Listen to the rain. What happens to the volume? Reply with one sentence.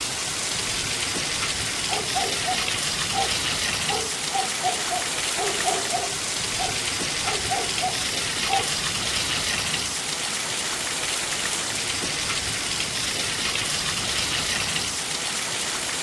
The loudness of the rain stays about the same.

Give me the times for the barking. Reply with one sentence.
You can hear the barking from 1.9 to 8.8 s.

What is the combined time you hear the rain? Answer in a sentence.
You can hear the rain for 16 seconds altogether.